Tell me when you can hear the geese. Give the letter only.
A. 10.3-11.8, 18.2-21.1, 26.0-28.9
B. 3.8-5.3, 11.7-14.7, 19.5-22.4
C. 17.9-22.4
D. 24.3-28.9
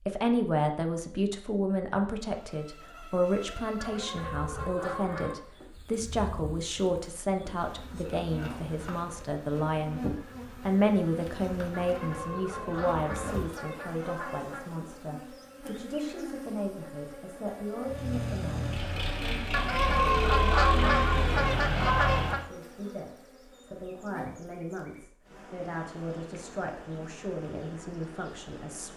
B.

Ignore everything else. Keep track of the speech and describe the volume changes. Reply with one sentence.
The loudness of the speech goes down.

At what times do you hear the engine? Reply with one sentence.
The engine can be heard from 17.9 to 22.4 s.